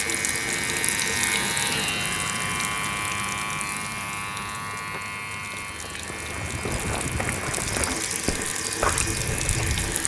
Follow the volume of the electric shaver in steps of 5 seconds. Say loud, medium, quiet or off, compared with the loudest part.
loud, medium.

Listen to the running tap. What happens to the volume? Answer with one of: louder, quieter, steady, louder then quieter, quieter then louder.
quieter then louder.